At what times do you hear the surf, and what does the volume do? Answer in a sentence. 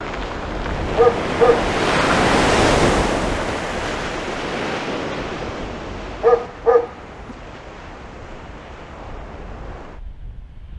You can hear the surf from 0.0 to 10.7 s, getting quieter.